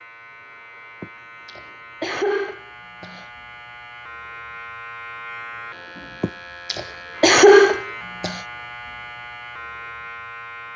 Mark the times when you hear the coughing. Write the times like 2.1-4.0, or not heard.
1.0-3.2, 6.2-8.4.